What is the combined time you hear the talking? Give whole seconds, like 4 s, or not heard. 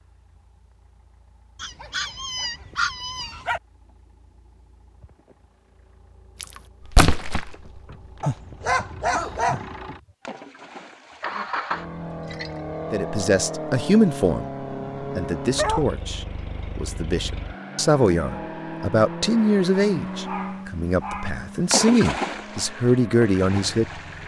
11 s.